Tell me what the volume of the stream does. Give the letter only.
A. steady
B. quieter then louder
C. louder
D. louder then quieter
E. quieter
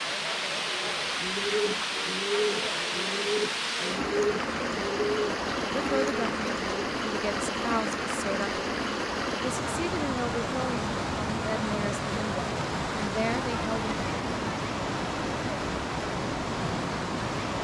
A.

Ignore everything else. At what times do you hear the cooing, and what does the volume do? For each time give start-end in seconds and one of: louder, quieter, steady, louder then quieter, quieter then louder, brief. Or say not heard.
0.8-6.9 steady.